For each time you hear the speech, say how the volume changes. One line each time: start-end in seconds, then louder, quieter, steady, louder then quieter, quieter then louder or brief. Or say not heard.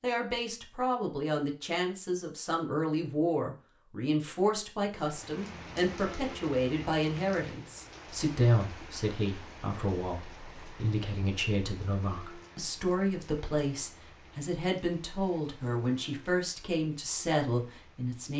0.0-18.3 steady.